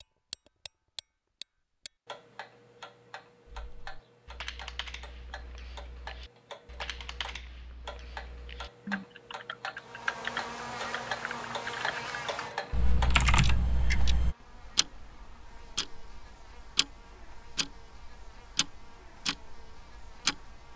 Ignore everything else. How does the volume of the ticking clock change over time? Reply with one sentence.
The loudness of the ticking clock goes up.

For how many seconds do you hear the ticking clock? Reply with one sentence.
The ticking clock can be heard for 21 seconds in total.